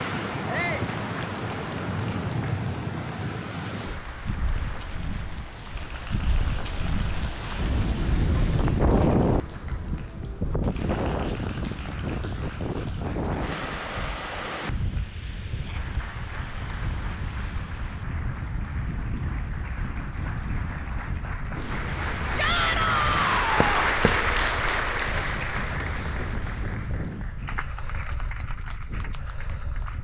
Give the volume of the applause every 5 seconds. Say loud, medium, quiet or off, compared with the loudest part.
quiet, quiet, quiet, quiet, loud, medium.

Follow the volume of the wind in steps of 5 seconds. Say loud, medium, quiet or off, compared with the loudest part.
loud, loud, loud, medium, medium, medium.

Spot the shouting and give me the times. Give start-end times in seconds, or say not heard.
0.5-0.9, 15.5-15.9, 22.4-24.0.